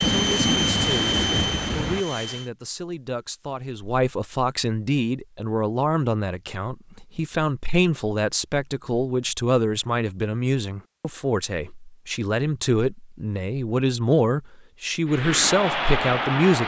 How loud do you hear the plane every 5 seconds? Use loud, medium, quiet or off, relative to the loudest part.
loud, off, off, loud.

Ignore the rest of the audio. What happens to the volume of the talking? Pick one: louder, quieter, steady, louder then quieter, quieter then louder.
louder.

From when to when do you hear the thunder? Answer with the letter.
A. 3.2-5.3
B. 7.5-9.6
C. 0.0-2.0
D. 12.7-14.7
C.